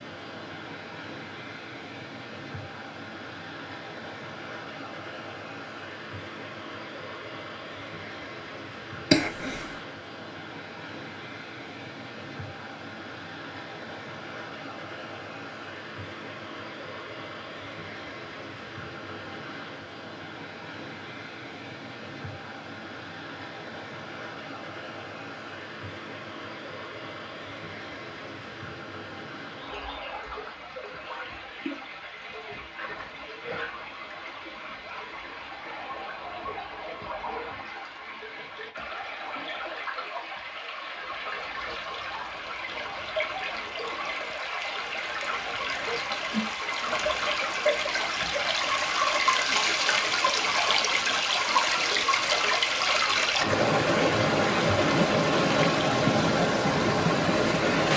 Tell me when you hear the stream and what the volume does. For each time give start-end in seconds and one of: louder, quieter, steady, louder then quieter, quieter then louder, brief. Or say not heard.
0.0-57.9 louder.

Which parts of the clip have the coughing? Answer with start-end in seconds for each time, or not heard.
9.1-9.7.